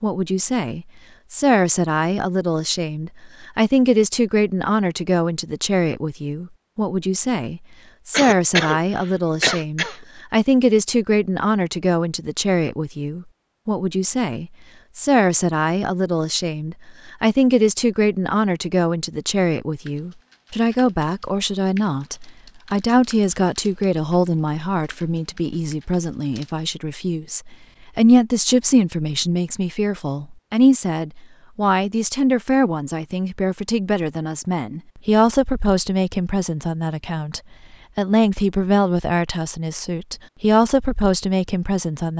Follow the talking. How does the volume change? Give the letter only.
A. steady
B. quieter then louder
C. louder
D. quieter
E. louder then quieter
A.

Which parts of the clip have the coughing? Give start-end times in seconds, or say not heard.
8.1-9.9.